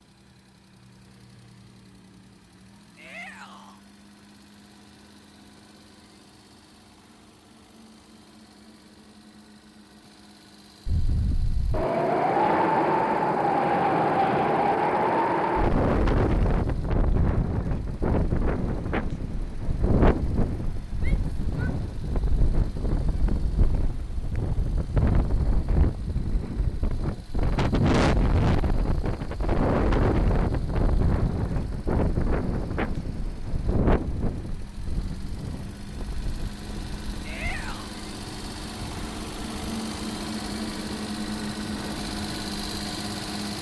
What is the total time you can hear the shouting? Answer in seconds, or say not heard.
2 s.